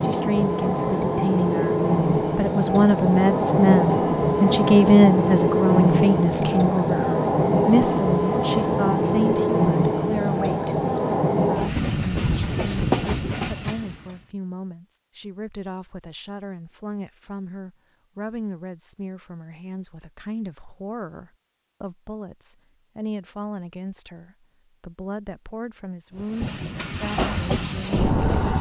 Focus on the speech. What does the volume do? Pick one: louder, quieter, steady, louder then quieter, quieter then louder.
quieter.